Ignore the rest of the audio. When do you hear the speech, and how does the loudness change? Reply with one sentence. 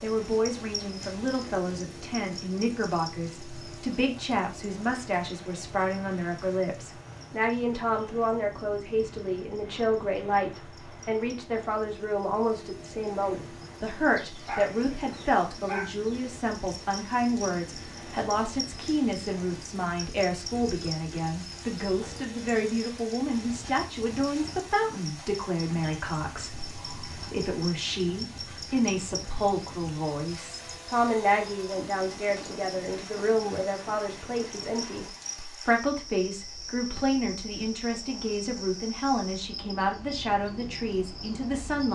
You can hear the speech from 0.0 to 41.9 s, at a steady volume.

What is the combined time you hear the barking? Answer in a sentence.
The barking can be heard for 2 seconds in total.